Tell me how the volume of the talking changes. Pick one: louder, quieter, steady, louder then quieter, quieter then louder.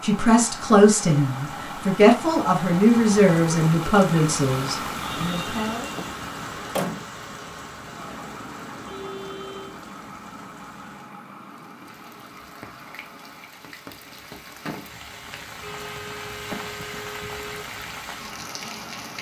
quieter.